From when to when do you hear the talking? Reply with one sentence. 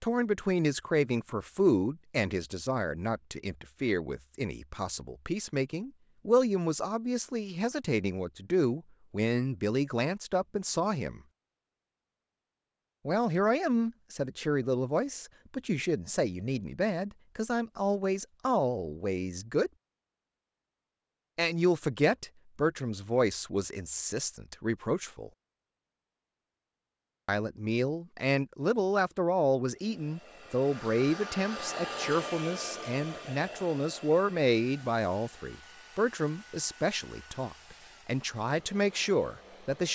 The talking can be heard from 0.0 to 11.2 s, from 13.1 to 19.7 s, from 21.4 to 25.3 s and from 27.2 to 39.9 s.